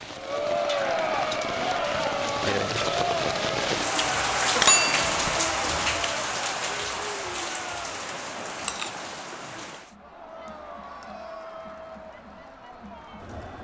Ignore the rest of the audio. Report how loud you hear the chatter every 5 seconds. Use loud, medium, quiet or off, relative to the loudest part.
loud, medium, quiet.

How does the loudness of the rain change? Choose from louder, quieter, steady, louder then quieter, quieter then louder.
louder then quieter.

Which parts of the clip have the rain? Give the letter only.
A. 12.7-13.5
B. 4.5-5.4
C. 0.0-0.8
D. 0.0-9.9
D.